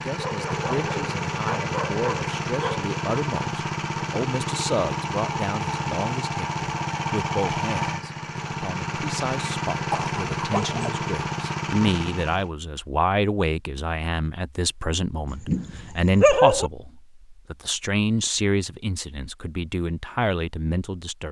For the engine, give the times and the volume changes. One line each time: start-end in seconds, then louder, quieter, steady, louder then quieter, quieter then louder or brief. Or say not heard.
0.0-12.5 steady.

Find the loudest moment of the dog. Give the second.
16 s.